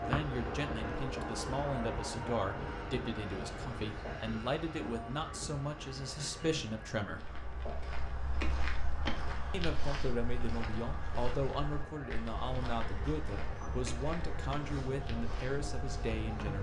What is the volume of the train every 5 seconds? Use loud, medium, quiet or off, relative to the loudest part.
loud, medium, medium, loud.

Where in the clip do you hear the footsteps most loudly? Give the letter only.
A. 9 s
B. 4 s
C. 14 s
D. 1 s
A.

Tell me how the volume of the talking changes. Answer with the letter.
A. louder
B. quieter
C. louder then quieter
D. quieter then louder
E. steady
E.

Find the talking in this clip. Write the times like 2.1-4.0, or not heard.
0.0-7.3, 9.5-16.5.